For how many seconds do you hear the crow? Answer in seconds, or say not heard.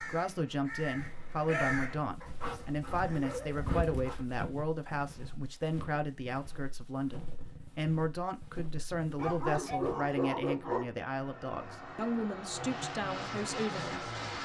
2 s.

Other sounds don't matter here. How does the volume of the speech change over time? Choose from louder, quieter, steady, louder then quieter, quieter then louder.
steady.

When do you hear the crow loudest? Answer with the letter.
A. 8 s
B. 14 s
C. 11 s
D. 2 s
D.